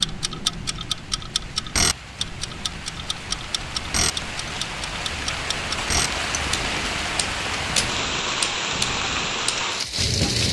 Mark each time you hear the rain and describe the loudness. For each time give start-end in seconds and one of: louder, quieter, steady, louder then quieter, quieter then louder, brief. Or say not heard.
0.0-10.4 louder.